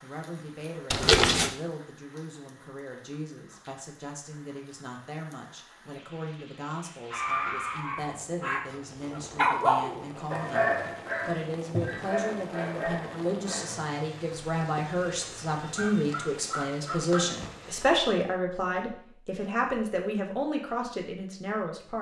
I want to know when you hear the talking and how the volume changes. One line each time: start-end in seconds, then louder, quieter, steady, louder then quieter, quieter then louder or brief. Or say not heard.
0.0-21.9 louder.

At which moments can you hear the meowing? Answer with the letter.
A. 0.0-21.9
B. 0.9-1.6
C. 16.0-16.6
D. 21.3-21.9
B.